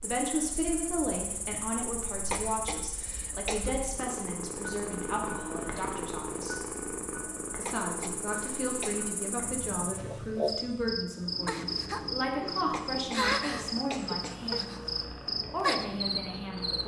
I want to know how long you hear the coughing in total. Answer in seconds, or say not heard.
5 s.